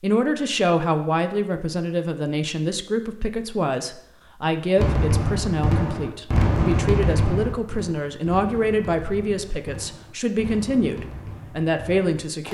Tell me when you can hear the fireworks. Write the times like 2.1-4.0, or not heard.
4.8-12.4.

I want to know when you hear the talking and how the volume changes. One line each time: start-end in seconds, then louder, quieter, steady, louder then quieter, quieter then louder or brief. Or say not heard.
0.0-12.4 steady.